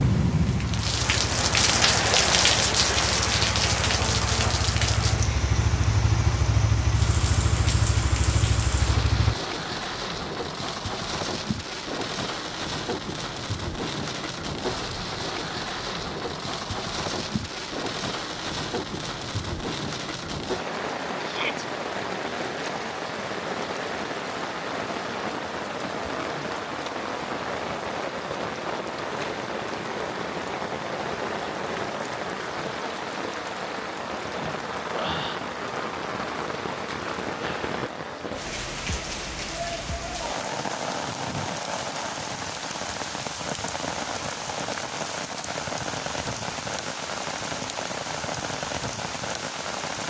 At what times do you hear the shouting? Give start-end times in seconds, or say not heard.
21.2-21.6.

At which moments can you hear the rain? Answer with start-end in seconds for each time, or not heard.
0.0-50.0.